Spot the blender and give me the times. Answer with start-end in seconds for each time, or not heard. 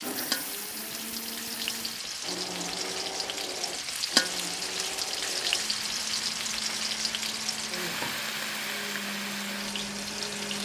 0.0-10.6.